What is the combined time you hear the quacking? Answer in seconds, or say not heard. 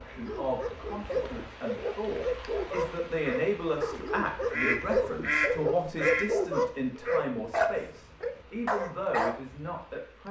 2 s.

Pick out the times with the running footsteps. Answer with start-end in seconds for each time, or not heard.
not heard.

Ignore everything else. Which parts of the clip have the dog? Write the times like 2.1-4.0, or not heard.
0.1-9.4.